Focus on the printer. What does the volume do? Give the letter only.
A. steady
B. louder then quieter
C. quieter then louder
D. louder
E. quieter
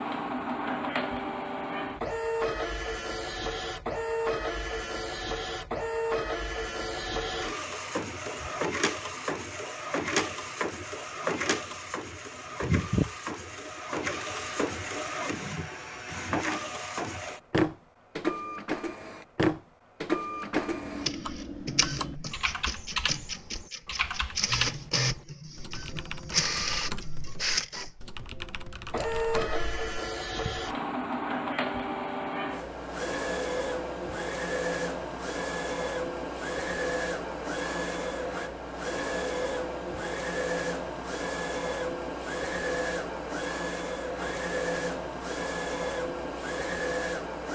A.